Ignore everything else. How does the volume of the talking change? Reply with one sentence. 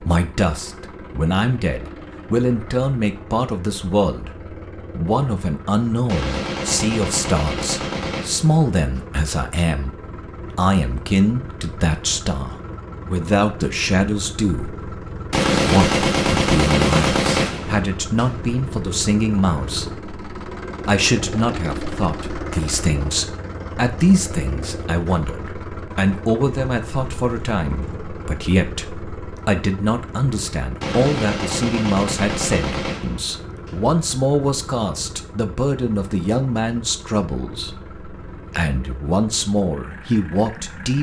The loudness of the talking stays about the same.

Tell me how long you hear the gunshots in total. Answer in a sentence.
The gunshots can be heard for 9 seconds in total.